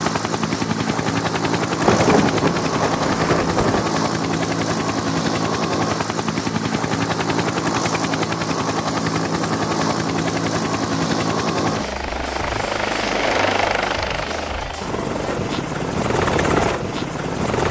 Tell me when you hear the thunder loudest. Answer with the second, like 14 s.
2 s.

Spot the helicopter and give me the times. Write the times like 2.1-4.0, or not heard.
0.0-17.6.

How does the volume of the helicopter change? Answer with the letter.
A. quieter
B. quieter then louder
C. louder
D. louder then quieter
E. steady
E.